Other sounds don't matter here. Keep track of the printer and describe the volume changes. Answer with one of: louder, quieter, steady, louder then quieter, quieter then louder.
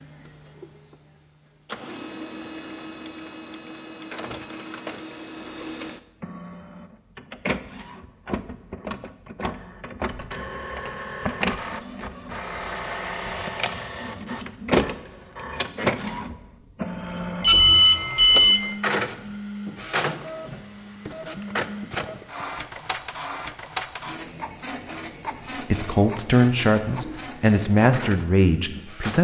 louder then quieter.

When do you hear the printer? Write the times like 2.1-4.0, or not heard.
0.0-29.1.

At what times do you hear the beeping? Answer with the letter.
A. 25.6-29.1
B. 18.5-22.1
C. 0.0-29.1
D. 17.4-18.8
D.